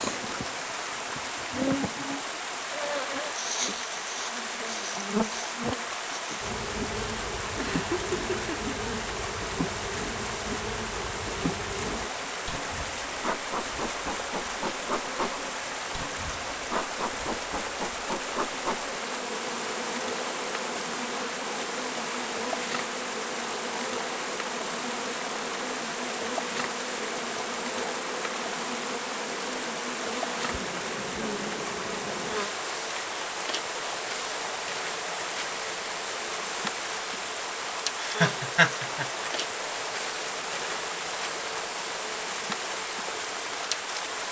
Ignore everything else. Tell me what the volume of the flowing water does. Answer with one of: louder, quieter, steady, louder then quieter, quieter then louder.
steady.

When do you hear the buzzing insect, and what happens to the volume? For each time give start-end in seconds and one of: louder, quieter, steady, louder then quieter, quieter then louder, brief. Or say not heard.
0.0-44.2 steady.